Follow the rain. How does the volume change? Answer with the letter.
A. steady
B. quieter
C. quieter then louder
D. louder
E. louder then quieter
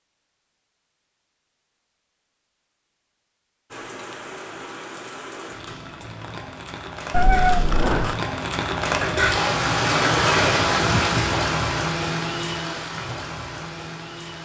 E.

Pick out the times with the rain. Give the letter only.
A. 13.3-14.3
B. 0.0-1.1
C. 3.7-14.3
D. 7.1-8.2
C.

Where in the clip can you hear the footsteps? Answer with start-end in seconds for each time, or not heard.
not heard.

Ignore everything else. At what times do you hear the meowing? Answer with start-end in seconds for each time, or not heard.
7.1-8.2.